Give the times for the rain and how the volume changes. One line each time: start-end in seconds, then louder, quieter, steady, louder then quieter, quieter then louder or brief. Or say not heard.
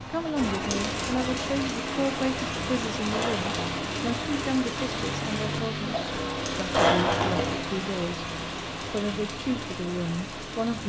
0.0-10.8 quieter.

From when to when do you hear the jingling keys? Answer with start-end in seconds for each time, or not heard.
3.1-3.7, 6.7-7.7.